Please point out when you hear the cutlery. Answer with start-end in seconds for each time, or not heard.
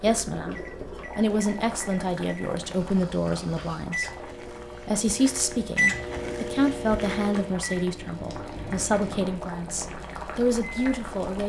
not heard.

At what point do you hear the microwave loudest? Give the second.
6 s.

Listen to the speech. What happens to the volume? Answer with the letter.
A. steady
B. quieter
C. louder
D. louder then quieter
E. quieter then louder
A.